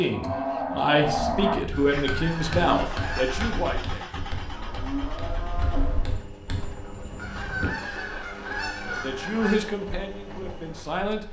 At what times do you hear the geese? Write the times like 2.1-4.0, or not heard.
1.7-3.5, 7.2-9.8.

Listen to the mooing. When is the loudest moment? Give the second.
1 s.